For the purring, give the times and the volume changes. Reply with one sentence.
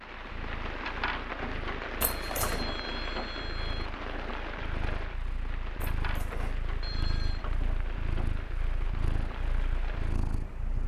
The purring can be heard from 0.2 to 10.8 s, getting louder.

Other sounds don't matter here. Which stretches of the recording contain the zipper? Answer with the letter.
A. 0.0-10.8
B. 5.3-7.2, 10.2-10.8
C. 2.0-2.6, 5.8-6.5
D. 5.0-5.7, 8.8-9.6
C.